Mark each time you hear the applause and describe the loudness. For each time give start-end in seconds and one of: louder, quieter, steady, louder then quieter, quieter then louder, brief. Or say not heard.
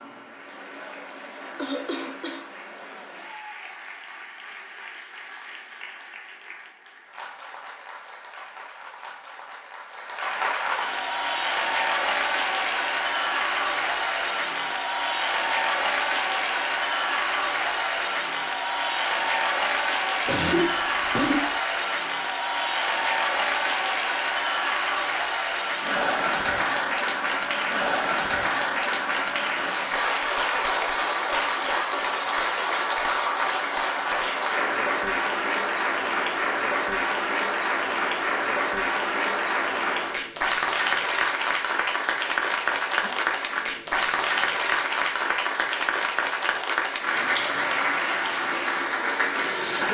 0.0-49.8 louder.